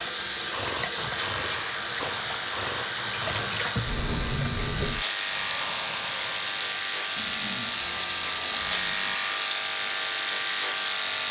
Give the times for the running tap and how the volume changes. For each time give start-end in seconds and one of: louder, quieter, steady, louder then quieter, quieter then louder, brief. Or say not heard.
0.0-11.2 steady.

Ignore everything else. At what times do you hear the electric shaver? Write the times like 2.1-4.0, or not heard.
0.0-11.2.